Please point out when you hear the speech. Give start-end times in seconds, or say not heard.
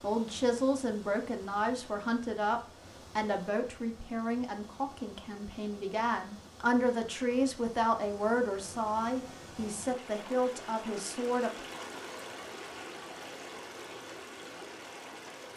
0.0-11.5.